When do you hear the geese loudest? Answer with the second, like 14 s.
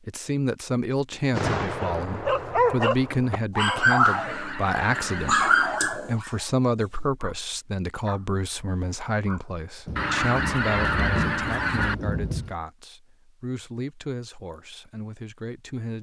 11 s.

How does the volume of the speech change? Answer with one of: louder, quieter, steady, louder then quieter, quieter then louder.
quieter.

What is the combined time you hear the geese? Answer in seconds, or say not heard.
4 s.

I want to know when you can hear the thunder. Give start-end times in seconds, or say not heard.
9.8-12.6.